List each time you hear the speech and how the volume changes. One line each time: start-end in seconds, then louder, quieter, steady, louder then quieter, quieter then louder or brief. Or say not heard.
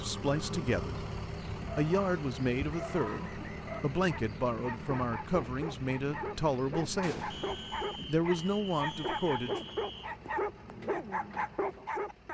0.0-1.0 brief
1.8-7.3 steady
8.1-9.6 brief.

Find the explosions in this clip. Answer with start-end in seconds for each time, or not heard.
7.0-7.8.